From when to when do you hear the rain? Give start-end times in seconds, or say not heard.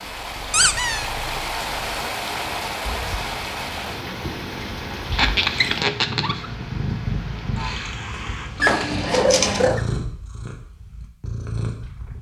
0.0-8.5.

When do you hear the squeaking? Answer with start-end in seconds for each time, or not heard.
0.5-1.1, 5.1-6.5, 8.6-9.8.